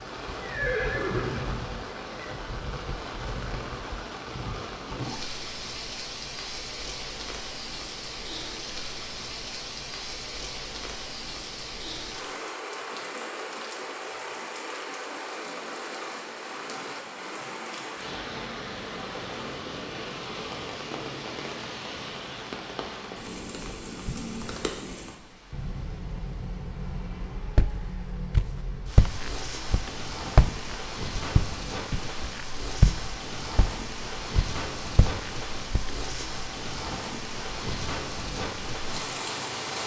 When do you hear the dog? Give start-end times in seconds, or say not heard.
not heard.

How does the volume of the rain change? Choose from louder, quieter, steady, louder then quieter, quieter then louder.
steady.